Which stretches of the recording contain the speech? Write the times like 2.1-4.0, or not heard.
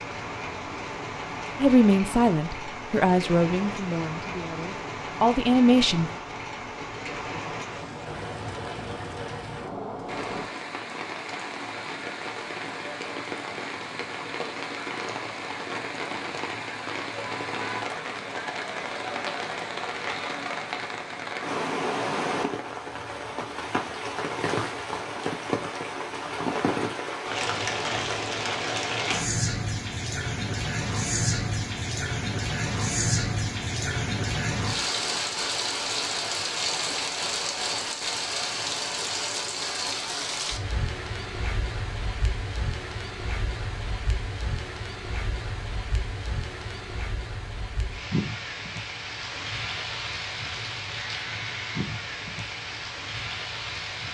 1.6-6.1.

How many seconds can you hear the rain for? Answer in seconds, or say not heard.
54 s.